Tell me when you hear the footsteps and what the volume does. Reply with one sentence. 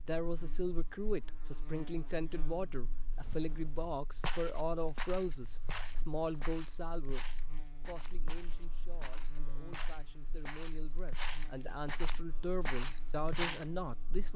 The footsteps can be heard from 3.0 to 13.7 s, getting quieter then louder.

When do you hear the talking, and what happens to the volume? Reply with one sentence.
The talking can be heard from 0.0 to 7.2 s, at a steady volume; and from 7.8 to 14.3 s, getting louder.